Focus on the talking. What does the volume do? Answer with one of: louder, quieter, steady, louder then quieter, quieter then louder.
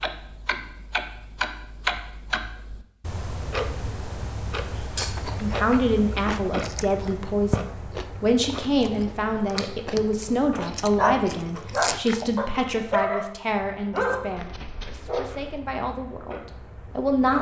quieter.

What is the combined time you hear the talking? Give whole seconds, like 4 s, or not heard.
12 s.